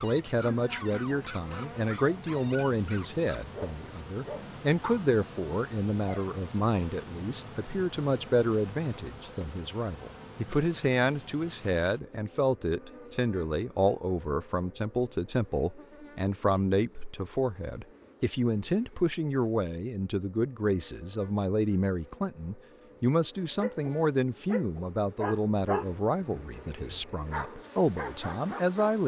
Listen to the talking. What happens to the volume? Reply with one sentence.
The volume of the talking stays about the same.